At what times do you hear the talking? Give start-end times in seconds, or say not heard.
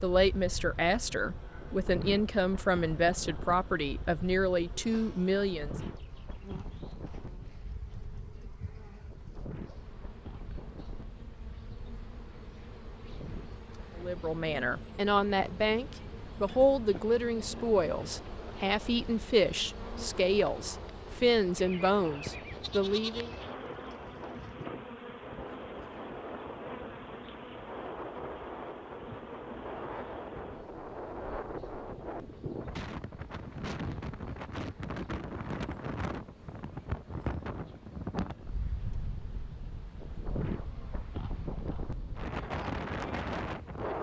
0.0-5.8, 13.9-23.3.